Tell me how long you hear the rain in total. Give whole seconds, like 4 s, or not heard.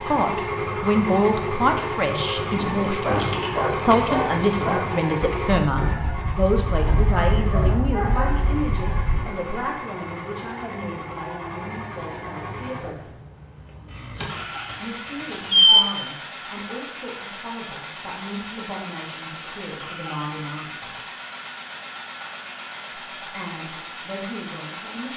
not heard.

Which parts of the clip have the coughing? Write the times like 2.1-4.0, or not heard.
not heard.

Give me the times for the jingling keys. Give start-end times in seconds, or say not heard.
2.5-4.7, 13.9-15.8.